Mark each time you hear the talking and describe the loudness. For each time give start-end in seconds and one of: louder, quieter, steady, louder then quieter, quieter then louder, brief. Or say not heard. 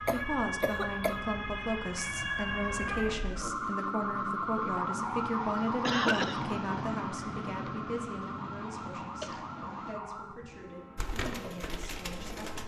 0.0-12.6 quieter.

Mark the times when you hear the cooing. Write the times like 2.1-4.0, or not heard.
10.9-12.6.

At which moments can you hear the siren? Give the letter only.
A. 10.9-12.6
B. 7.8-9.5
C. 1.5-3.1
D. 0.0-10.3
D.